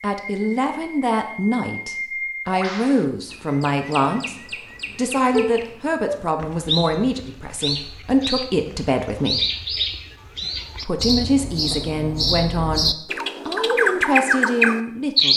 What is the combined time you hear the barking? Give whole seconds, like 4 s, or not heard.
not heard.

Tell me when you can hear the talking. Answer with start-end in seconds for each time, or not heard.
0.0-4.3, 5.0-9.4, 10.8-15.3.